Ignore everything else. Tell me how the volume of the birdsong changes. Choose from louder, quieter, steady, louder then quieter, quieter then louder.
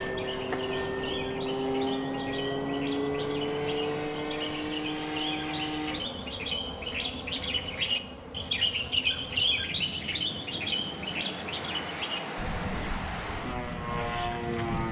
louder then quieter.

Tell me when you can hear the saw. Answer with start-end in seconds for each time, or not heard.
not heard.